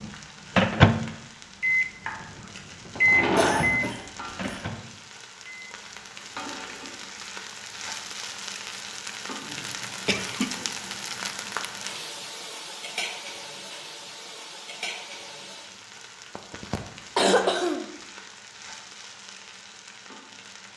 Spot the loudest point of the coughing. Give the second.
17 s.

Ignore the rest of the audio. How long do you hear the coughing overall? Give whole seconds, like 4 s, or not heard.
4 s.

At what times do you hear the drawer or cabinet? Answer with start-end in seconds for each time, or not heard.
3.0-3.9.